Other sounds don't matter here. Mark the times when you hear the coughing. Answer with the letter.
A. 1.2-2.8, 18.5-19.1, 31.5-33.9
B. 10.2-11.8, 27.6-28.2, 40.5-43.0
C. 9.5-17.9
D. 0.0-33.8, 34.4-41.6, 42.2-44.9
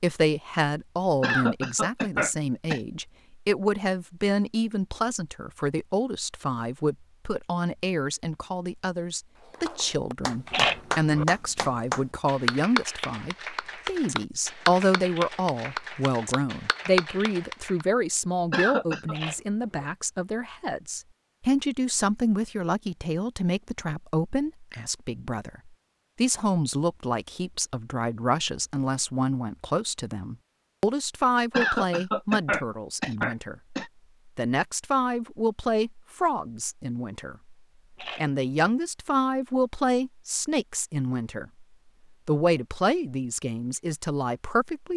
A.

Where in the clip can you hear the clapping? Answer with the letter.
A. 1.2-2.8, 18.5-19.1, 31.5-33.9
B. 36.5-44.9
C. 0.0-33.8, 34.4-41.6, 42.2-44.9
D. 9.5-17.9
D.